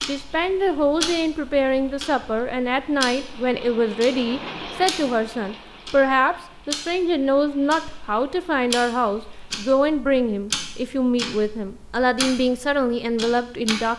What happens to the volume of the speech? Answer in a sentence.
The volume of the speech stays about the same.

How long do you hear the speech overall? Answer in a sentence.
You can hear the speech for 14 seconds altogether.